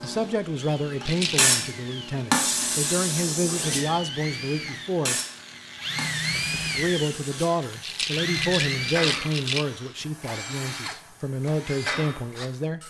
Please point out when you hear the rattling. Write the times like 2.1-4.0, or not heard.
1.0-1.5, 7.8-9.7.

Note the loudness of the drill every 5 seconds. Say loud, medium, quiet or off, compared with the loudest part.
medium, loud, medium.